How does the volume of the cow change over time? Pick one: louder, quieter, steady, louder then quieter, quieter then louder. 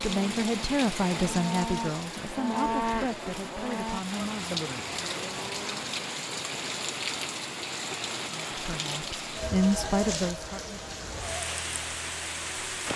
louder then quieter.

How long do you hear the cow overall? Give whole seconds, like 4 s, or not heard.
6 s.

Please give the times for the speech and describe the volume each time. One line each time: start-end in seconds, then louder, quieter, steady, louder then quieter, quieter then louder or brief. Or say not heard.
0.0-4.6 quieter
8.2-10.8 brief.